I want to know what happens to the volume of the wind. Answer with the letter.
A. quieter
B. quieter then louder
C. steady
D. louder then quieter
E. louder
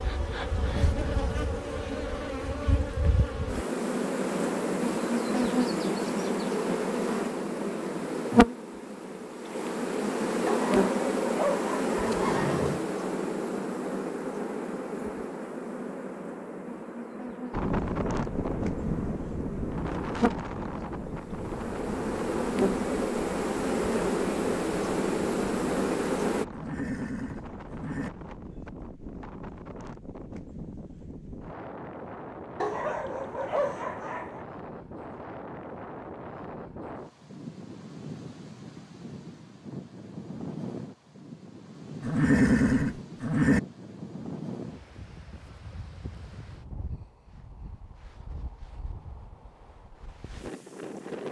A.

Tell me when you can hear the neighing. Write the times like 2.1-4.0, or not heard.
12.0-12.8, 26.5-28.1, 42.0-43.6.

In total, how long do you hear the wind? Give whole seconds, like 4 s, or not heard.
34 s.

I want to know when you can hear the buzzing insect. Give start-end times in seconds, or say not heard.
0.0-26.4.